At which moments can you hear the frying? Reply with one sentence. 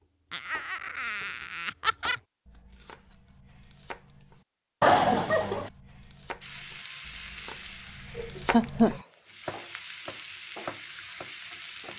You can hear the frying from 6.4 to 11.9 s.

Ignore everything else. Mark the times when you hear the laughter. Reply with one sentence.
You can hear the laughter from 0.3 to 2.1 s, from 4.8 to 5.7 s and from 8.2 to 8.9 s.